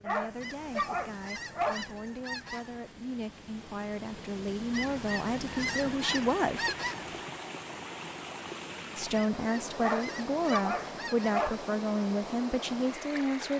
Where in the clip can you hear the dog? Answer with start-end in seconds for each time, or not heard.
0.1-1.9, 9.8-11.6.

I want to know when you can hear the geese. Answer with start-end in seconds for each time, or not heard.
0.4-2.9, 4.7-7.2, 9.1-11.4.